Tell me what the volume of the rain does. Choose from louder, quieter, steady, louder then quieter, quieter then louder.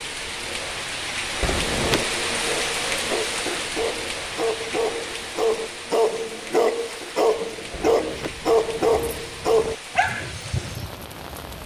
quieter.